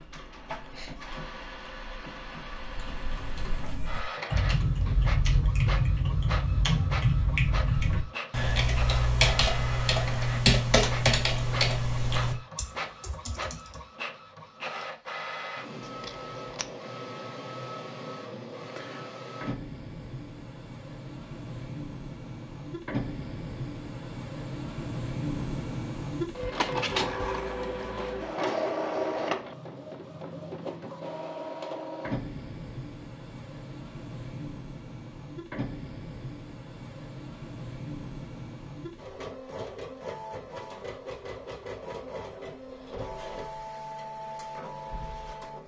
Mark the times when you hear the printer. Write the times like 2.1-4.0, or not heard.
0.0-45.6.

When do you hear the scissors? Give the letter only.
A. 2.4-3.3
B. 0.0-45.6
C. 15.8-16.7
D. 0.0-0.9
C.